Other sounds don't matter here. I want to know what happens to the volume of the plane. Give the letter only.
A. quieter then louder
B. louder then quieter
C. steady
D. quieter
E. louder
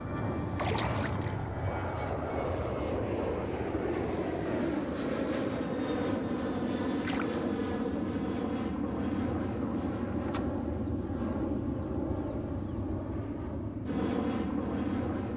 C.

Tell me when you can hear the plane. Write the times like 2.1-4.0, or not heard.
0.0-15.3.